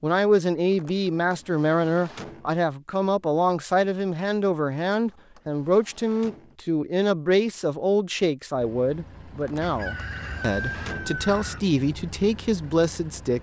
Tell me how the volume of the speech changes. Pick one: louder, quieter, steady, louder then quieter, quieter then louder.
steady.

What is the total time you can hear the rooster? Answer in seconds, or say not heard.
2 s.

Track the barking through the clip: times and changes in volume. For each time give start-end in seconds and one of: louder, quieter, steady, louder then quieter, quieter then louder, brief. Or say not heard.
not heard.